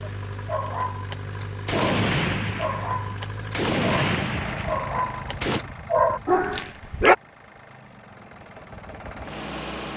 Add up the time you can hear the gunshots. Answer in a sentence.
The gunshots can be heard for 4 seconds in total.